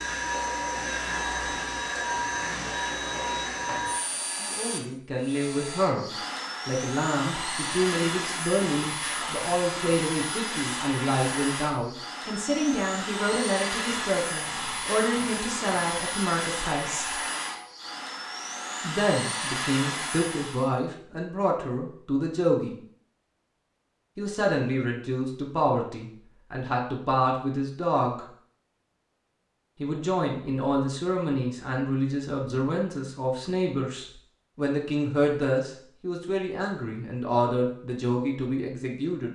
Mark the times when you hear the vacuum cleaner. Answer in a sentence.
The vacuum cleaner can be heard from 0.0 to 20.7 s.